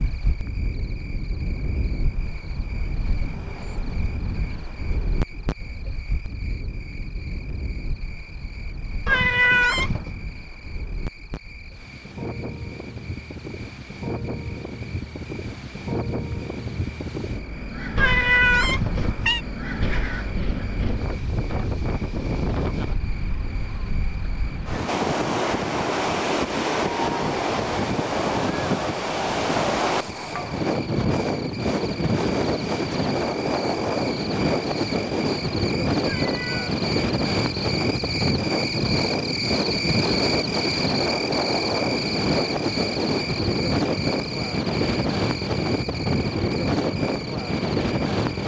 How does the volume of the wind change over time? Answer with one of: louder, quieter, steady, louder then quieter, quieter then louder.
louder.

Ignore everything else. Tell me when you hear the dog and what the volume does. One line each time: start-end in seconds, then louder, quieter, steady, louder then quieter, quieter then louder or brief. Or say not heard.
not heard.